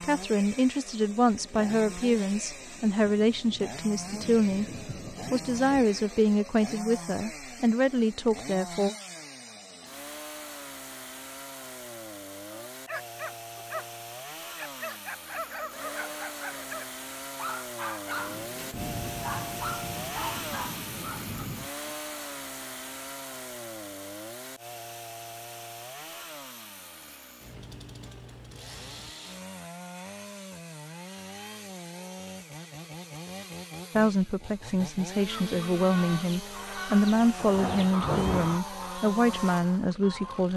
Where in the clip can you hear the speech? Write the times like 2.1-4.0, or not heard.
0.0-8.9, 34.0-40.5.